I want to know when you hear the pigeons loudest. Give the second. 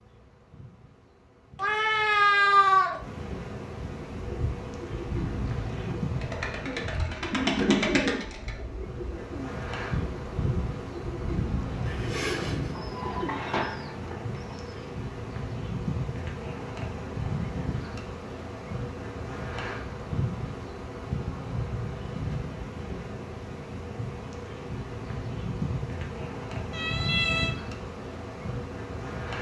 8 s.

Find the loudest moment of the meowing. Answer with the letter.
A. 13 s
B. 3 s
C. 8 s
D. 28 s
B.